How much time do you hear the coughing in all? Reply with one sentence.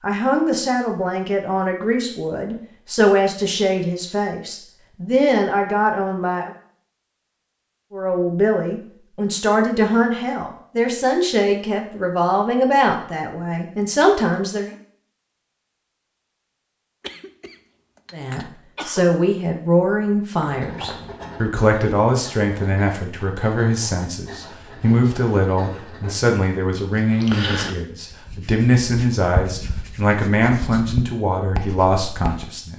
The coughing can be heard for 2 seconds in total.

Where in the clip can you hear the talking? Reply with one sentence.
You can hear the talking from 0.0 to 6.5 s, from 7.9 to 14.7 s and from 18.1 to 32.7 s.